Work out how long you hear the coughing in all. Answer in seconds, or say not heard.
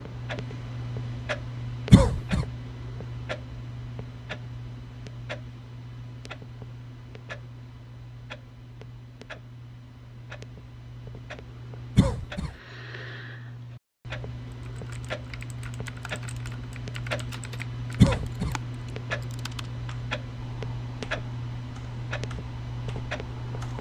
2 s.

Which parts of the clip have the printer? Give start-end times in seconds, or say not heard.
not heard.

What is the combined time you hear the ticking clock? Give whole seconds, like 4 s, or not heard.
24 s.